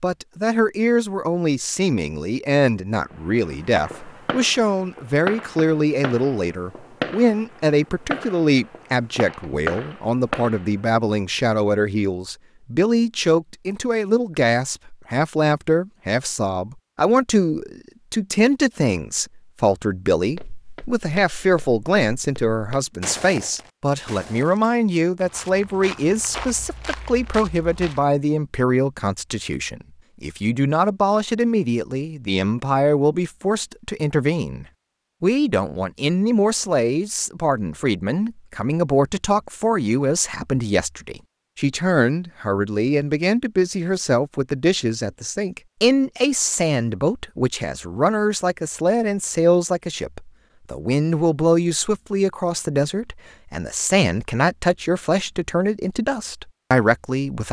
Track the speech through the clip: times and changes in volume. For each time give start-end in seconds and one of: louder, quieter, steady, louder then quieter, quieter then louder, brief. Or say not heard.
0.0-57.4 steady.